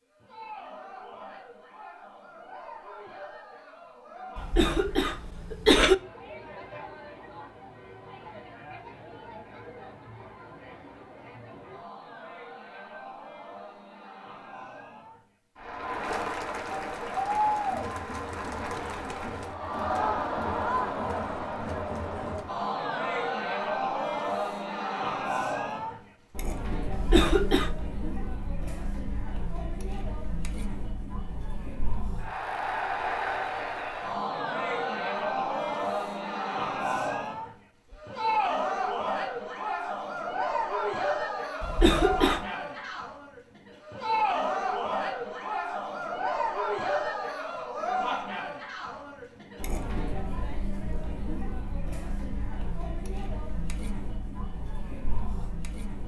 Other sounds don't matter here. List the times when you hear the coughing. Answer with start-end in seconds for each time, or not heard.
4.3-6.0, 26.9-27.7, 41.6-42.5.